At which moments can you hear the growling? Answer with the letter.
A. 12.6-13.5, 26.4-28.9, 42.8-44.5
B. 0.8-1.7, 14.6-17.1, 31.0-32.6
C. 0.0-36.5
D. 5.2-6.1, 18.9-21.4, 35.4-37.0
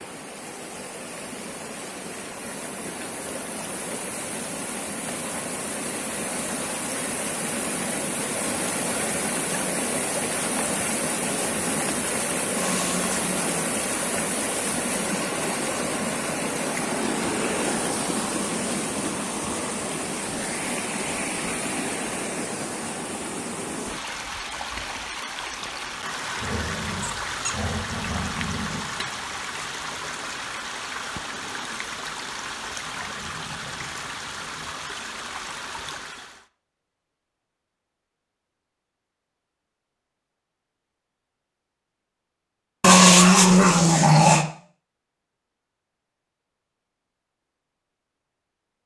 A.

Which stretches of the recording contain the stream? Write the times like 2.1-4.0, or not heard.
0.0-36.5.